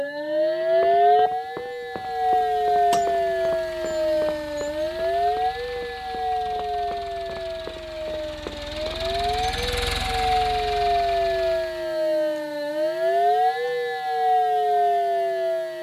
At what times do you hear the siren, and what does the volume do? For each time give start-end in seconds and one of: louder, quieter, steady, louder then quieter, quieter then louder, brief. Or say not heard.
0.0-15.7 quieter then louder.